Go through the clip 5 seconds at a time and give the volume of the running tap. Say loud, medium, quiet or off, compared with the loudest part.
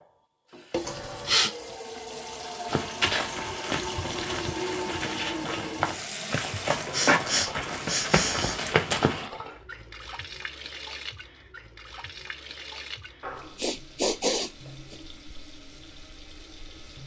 loud, loud, medium, quiet.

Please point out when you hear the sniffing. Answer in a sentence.
The sniffing can be heard from 0.8 to 1.5 s, from 6.5 to 8.6 s and from 13.6 to 14.9 s.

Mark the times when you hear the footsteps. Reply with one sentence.
The footsteps can be heard from 2.6 to 9.2 s.